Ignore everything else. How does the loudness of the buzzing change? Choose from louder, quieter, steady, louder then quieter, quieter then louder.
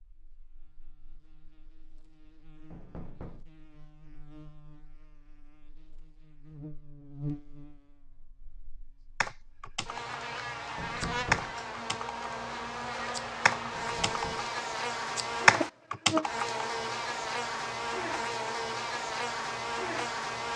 louder.